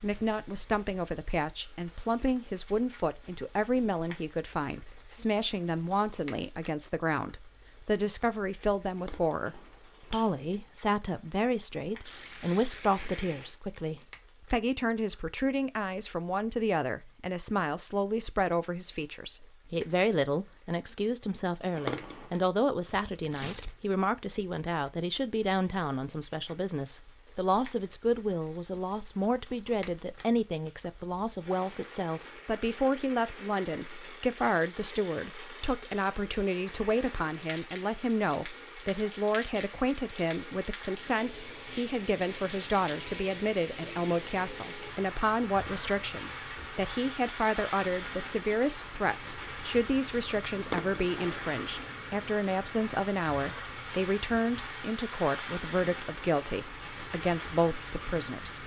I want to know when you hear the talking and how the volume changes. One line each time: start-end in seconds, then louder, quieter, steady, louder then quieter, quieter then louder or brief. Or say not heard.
0.0-58.6 steady.